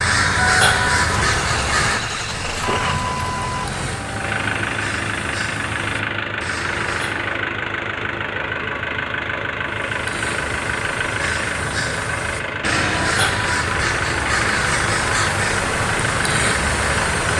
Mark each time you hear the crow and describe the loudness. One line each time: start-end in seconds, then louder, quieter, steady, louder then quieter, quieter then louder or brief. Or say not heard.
0.0-7.4 quieter
9.7-17.3 louder.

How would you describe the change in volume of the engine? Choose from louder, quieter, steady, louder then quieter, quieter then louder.
steady.